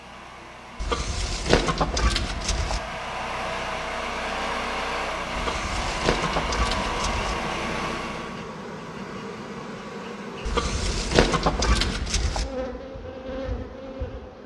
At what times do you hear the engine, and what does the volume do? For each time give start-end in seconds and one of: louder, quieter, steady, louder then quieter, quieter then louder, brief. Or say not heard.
0.0-8.4 louder.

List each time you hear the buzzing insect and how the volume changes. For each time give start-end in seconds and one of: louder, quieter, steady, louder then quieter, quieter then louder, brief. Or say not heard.
6.8-14.4 steady.